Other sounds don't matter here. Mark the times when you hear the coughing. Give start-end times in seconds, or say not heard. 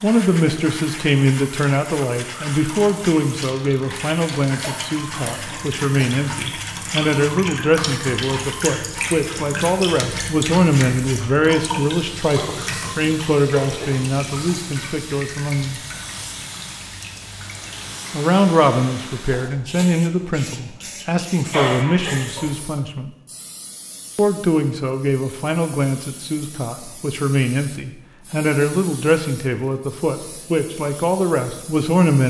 4.6-6.2, 12.3-14.2, 21.5-22.6.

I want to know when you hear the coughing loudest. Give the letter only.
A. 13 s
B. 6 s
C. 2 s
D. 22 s
D.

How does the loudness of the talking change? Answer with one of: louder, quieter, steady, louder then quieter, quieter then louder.
steady.